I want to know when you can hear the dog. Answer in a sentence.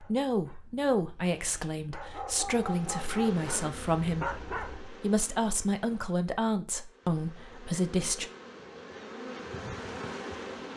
The dog can be heard from 0.0 to 4.8 s.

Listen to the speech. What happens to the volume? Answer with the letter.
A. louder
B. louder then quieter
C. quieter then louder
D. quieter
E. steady
E.